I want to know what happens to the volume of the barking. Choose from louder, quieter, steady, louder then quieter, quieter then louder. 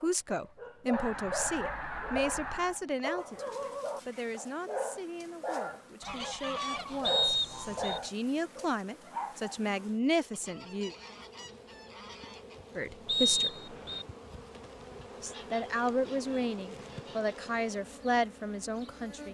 steady.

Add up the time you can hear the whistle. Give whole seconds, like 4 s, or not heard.
2 s.